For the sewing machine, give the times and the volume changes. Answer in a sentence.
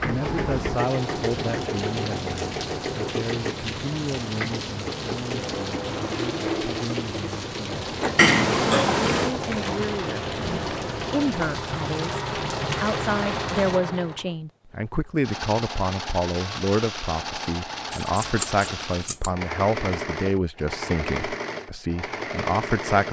You can hear the sewing machine from 0.0 to 23.0 s, at a steady volume.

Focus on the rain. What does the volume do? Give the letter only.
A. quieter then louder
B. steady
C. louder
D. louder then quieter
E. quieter
B.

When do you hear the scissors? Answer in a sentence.
You can hear the scissors from 8.2 to 9.3 s and from 18.1 to 19.3 s.